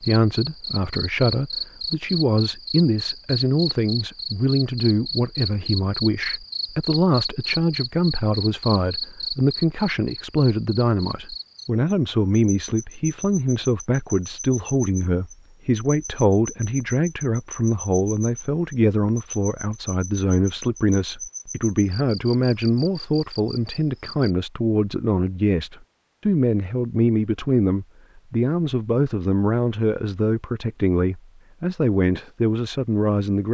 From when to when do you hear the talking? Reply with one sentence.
You can hear the talking from 0.0 to 33.4 s.